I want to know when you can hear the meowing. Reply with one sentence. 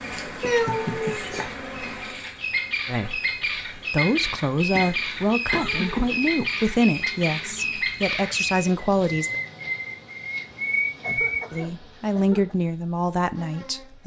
You can hear the meowing from 0.4 to 1.2 s.